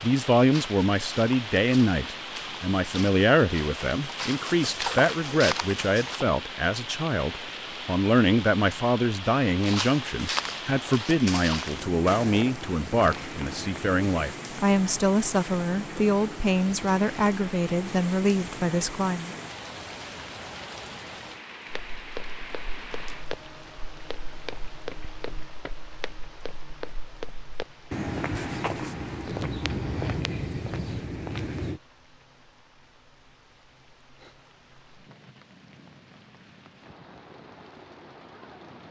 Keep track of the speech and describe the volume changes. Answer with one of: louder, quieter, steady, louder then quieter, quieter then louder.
steady.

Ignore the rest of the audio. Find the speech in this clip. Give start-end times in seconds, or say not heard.
0.0-19.4.